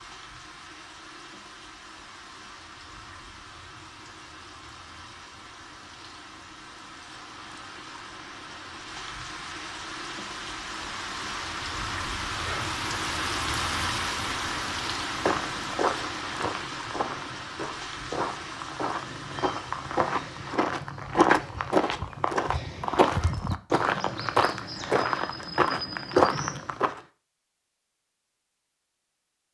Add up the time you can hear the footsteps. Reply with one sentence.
The footsteps can be heard for 12 seconds in total.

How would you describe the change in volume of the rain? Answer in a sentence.
The loudness of the rain goes up, then down.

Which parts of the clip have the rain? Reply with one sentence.
The rain can be heard from 0.0 to 20.6 s.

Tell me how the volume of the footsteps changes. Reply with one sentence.
The volume of the footsteps goes up.